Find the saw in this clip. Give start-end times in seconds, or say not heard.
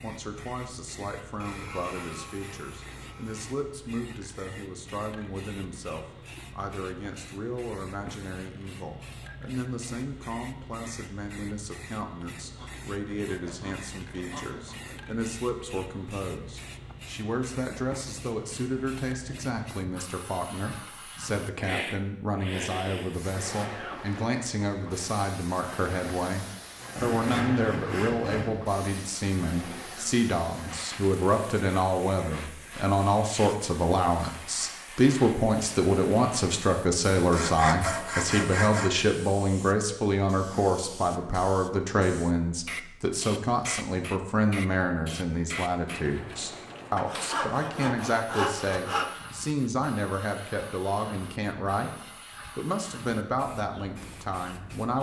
1.4-3.5, 12.5-15.0, 26.9-28.8, 37.3-39.0, 47.0-49.1.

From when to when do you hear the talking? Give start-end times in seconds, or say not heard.
0.0-54.9.